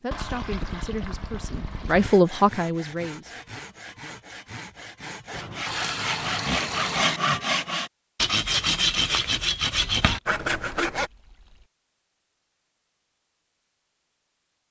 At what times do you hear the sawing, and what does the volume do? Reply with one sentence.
You can hear the sawing from 1.9 to 11.1 s, getting louder.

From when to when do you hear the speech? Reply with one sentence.
You can hear the speech from 0.0 to 3.3 s.